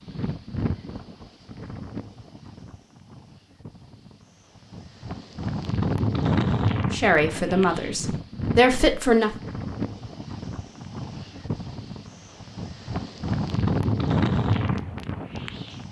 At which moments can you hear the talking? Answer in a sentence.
The talking can be heard from 6.9 to 9.3 s.